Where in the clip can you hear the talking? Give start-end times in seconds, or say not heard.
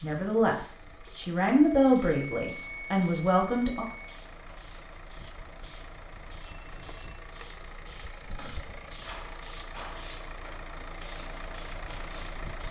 0.0-3.9.